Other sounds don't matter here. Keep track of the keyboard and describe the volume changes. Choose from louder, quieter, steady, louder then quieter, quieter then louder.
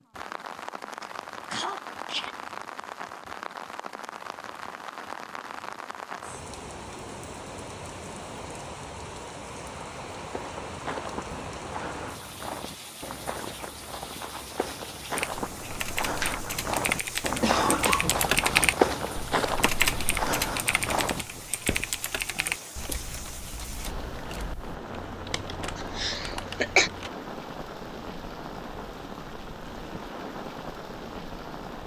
louder then quieter.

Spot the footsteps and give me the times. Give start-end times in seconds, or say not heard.
10.3-21.9.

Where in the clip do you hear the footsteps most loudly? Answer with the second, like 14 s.
19 s.